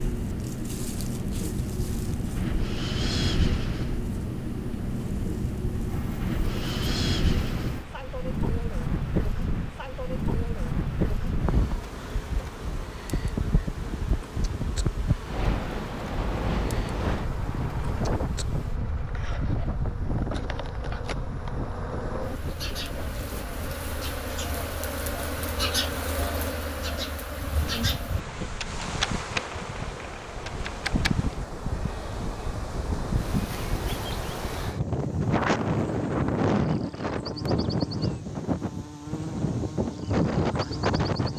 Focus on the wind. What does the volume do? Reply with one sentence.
The loudness of the wind goes down, then up.